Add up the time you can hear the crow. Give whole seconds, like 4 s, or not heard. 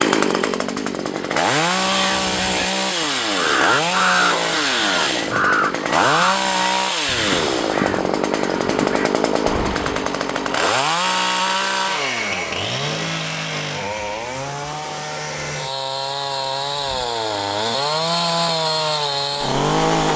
8 s.